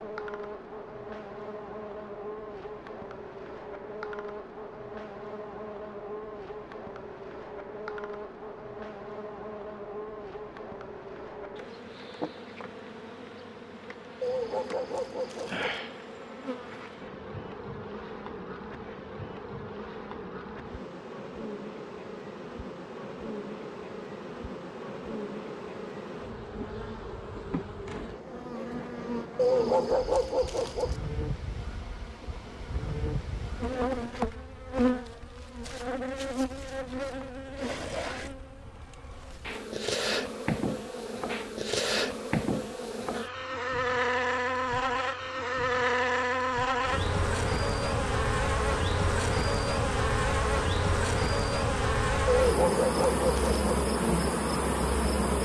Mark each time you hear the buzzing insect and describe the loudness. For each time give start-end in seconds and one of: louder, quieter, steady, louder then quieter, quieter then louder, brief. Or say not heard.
0.0-55.3 louder.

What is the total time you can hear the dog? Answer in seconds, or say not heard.
5 s.